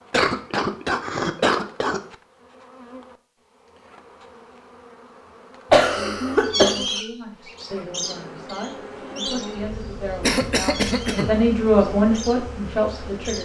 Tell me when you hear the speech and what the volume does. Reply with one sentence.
You can hear the speech from 5.9 to 13.3 s, getting louder.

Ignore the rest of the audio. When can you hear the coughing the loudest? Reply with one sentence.
The loudest moment of the coughing is at 6 seconds.